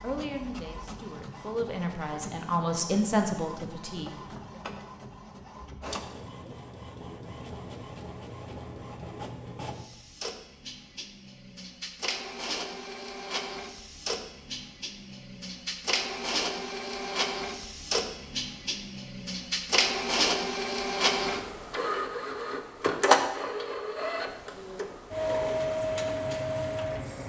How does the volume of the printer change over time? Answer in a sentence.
The volume of the printer goes up.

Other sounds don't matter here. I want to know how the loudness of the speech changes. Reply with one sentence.
The volume of the speech goes up, then down.